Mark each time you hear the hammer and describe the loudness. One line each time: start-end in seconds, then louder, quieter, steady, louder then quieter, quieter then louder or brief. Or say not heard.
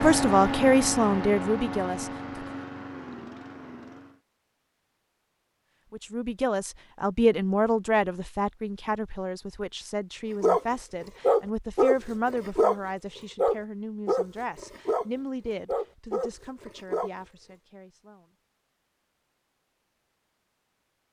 not heard.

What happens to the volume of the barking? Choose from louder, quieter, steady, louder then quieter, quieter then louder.
quieter.